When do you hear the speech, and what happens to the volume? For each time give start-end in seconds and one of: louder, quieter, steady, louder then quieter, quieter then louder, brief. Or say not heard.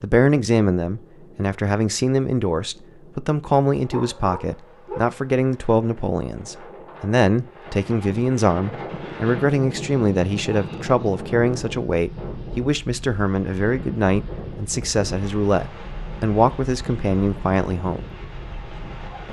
0.0-18.1 steady.